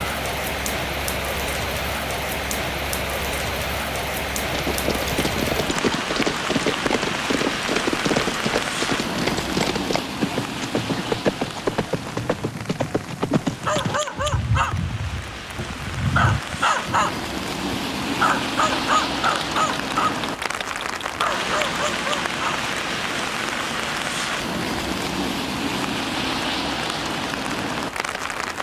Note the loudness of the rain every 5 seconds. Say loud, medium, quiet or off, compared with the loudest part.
loud, loud, medium, loud, loud, loud.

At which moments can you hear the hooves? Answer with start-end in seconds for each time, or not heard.
4.5-16.4.